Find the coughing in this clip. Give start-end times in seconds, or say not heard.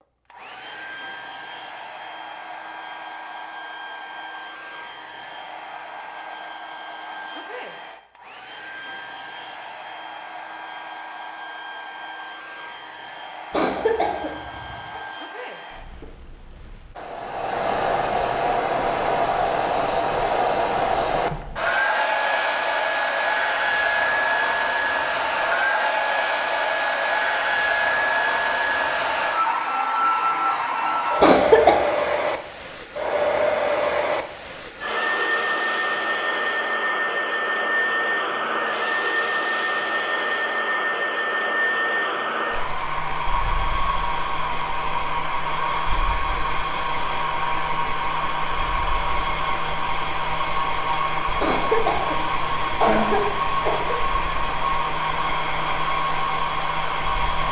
13.5-15.0, 31.2-31.9, 51.4-54.0.